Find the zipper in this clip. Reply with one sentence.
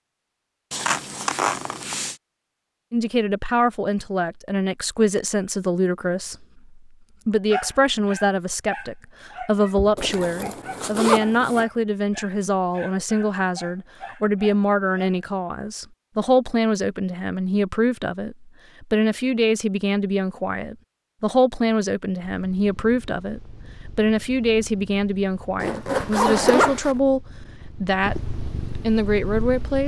The zipper can be heard from 0.7 to 2.1 s, from 9.9 to 11.7 s and from 25.6 to 26.9 s.